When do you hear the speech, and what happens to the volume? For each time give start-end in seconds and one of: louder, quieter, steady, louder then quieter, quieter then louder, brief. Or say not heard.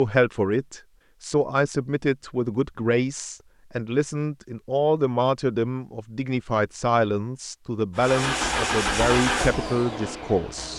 0.0-10.7 steady.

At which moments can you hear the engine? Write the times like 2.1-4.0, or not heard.
8.0-10.7.